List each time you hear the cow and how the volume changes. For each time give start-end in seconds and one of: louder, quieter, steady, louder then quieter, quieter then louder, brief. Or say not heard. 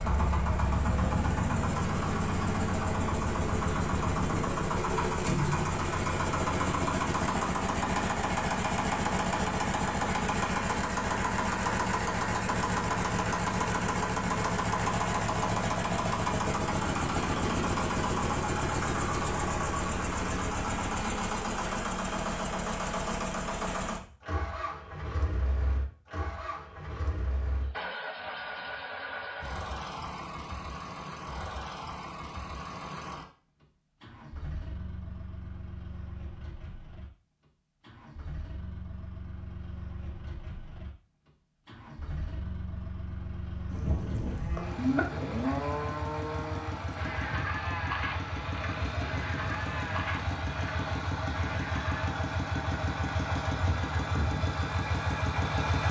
43.7-52.1 quieter.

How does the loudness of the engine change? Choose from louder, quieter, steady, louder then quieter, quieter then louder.
quieter then louder.